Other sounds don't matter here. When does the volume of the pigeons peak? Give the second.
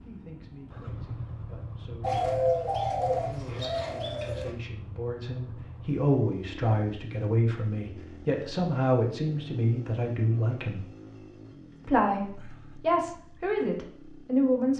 2 s.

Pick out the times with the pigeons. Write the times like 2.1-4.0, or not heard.
2.0-4.5.